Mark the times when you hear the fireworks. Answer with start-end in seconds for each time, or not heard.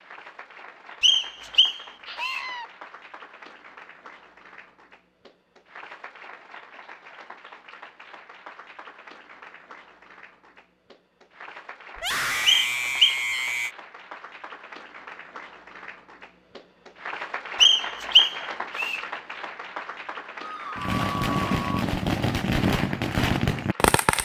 20.8-24.2.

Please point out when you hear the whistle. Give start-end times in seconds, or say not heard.
1.0-2.5, 12.4-13.2, 17.6-19.0.